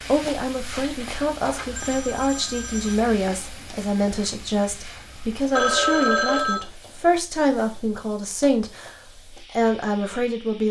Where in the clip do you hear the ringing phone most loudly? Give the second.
6 s.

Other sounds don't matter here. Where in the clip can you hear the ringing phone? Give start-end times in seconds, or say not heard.
0.8-3.0, 5.5-6.7.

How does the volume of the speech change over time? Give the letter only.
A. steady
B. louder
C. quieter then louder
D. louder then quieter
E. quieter
A.